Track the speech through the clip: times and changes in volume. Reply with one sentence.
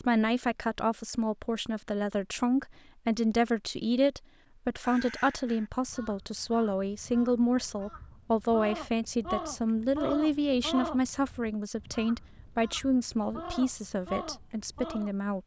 The speech can be heard from 0.0 to 15.4 s, at a steady volume.